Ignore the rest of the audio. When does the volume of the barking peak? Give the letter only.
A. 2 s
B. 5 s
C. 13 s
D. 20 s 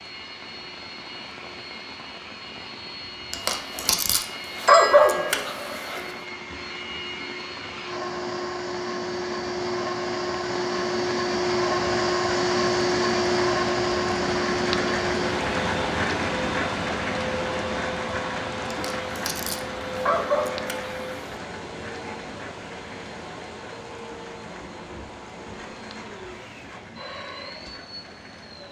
B.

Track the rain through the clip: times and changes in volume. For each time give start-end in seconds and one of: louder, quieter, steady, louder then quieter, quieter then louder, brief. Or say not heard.
0.0-28.6 louder then quieter.